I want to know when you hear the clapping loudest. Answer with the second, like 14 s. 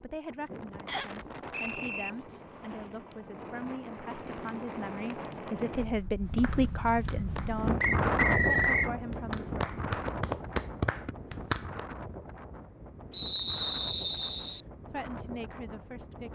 11 s.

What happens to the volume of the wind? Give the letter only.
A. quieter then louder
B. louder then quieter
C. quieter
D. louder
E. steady
B.